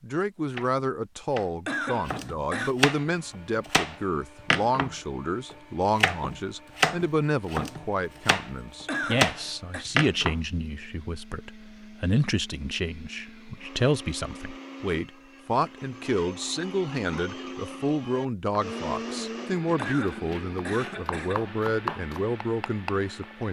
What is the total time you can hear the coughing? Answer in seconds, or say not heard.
4 s.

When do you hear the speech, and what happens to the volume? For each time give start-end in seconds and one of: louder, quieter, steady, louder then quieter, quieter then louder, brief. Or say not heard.
0.0-23.4 steady.